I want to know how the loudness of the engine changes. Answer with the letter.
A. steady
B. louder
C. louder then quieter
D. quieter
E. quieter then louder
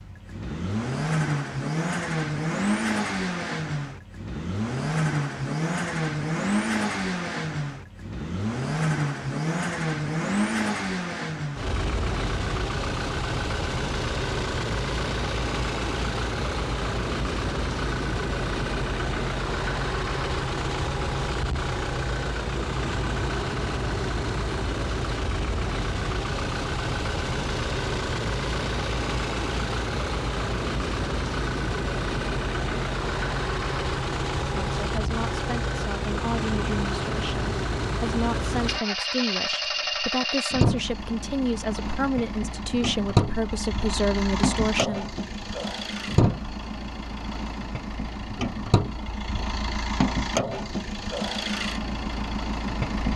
A.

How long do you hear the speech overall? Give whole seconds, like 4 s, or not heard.
11 s.